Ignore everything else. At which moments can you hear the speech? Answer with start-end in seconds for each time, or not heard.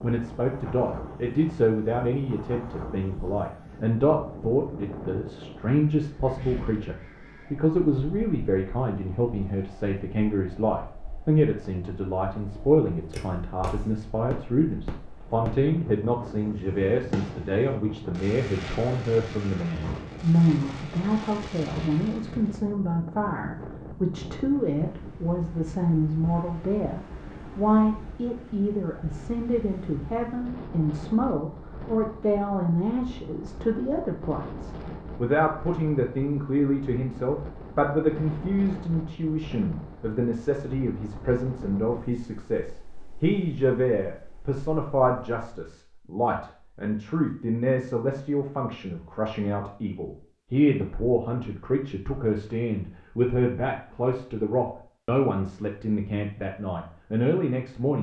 0.0-57.9.